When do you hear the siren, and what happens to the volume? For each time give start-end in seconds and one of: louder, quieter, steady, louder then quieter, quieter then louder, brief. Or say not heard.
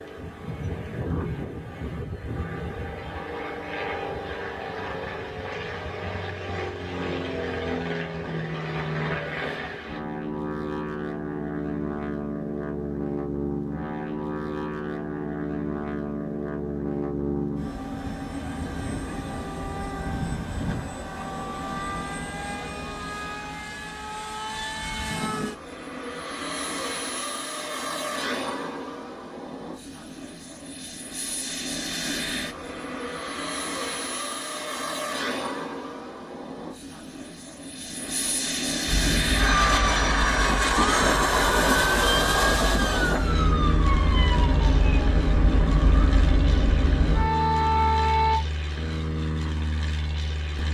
38.9-48.4 louder.